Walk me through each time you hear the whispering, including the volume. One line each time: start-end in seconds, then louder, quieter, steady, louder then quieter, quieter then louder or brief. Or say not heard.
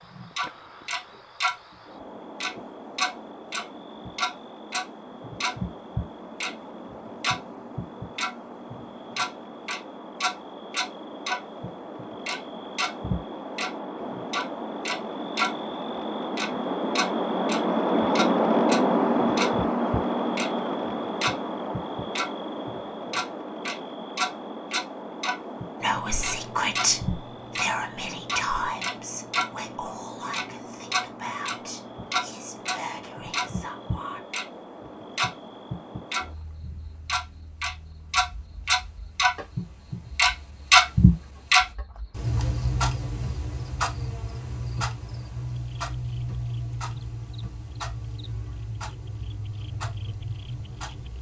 25.8-34.2 quieter.